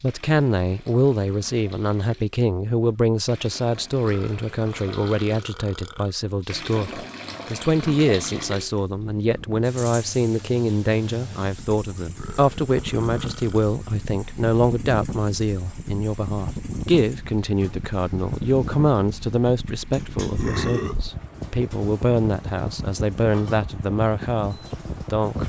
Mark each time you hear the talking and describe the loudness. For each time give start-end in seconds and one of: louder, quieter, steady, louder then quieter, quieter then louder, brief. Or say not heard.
0.0-25.4 steady.